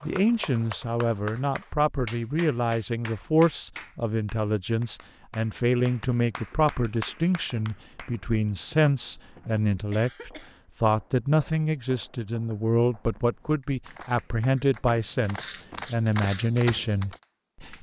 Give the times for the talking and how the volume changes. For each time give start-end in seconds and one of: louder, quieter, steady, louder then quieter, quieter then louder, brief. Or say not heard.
0.0-17.7 steady.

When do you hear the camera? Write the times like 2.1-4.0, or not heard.
not heard.